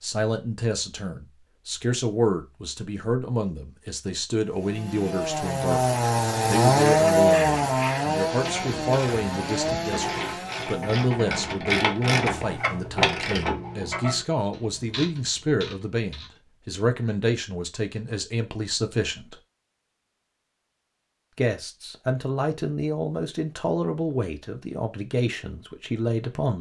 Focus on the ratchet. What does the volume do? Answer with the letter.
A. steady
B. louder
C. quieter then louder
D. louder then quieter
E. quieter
D.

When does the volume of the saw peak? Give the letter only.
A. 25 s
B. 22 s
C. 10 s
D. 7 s
D.